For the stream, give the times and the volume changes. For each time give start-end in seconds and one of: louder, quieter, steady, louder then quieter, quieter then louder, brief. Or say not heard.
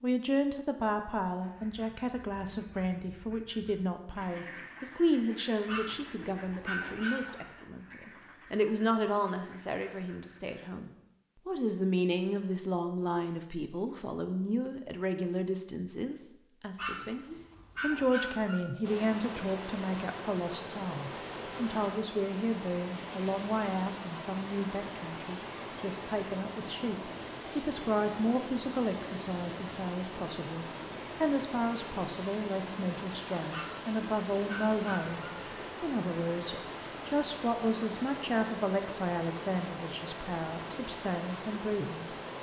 18.8-42.3 steady.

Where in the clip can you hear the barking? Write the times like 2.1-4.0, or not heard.
5.7-7.5, 16.8-18.6, 33.5-35.2.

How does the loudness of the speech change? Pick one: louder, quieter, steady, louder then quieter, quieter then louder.
steady.